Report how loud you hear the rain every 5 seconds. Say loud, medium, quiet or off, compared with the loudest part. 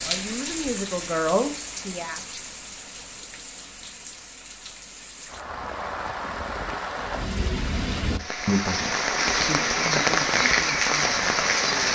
quiet, medium, loud.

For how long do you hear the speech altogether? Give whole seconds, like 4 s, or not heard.
6 s.